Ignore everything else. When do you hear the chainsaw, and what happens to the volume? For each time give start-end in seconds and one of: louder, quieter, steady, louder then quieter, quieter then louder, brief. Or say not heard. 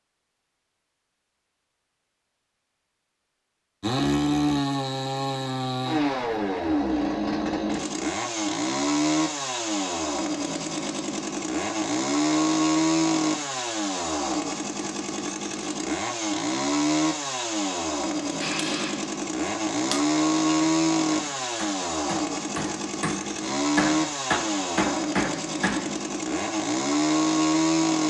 3.8-28.0 steady.